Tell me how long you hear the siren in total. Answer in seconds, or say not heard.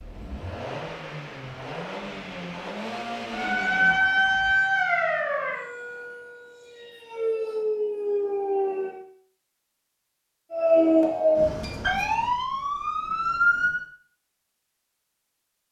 9 s.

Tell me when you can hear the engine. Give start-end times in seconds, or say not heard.
0.0-4.6.